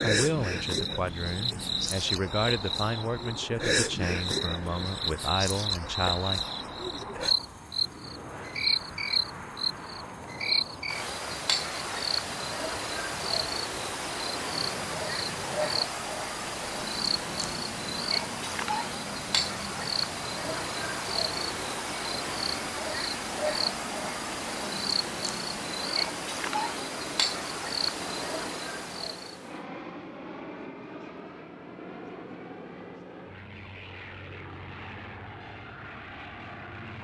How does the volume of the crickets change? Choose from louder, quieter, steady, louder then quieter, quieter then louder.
steady.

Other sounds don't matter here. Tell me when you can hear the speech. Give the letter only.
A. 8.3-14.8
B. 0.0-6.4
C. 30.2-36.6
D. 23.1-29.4
B.